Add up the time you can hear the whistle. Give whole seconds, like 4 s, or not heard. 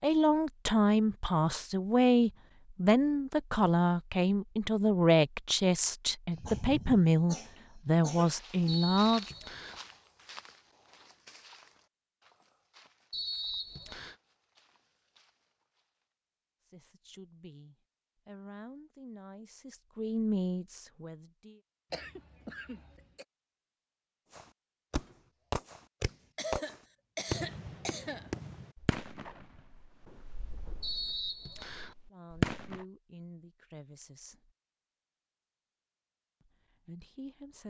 3 s.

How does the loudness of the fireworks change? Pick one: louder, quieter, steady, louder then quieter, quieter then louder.
quieter then louder.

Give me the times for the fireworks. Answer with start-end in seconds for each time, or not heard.
24.3-32.9.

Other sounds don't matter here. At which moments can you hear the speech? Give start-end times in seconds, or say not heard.
0.0-9.3, 16.6-21.6, 32.1-34.5, 36.4-37.6.